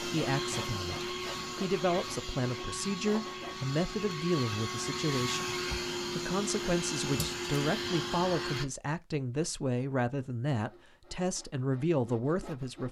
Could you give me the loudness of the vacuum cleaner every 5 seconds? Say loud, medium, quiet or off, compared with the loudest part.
loud, loud, off.